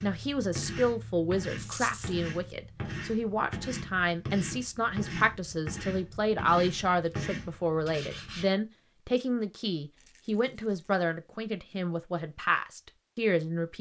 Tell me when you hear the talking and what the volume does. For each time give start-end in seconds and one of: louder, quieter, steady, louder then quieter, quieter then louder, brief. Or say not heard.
0.0-13.7 steady.